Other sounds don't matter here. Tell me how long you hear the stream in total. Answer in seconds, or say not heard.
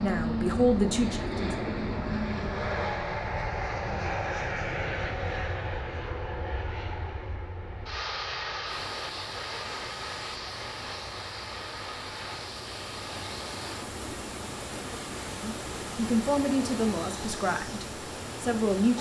10 s.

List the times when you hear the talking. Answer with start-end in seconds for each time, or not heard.
0.0-1.6, 15.3-18.9.